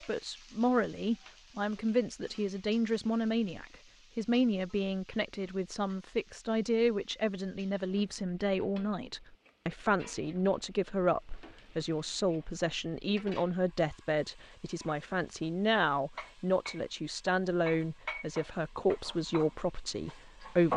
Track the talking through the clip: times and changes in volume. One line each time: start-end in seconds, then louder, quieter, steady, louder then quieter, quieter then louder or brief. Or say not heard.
0.1-20.7 steady.